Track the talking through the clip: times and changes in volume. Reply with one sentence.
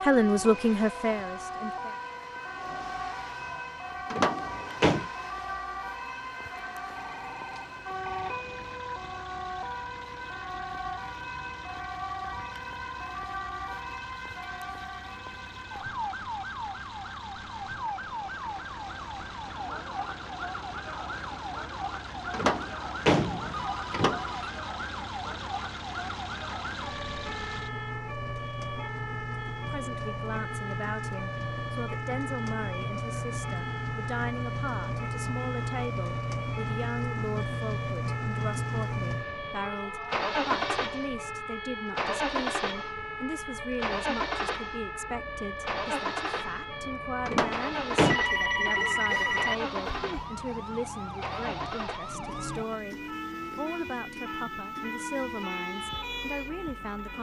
You can hear the talking briefly from 0.0 to 1.9 s; and from 29.6 to 57.1 s, at a steady volume.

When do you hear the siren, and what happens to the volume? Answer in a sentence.
You can hear the siren from 0.0 to 57.1 s, at a steady volume.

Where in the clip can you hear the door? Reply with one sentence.
You can hear the door from 4.1 to 5.0 s, from 22.3 to 24.4 s and from 47.2 to 48.1 s.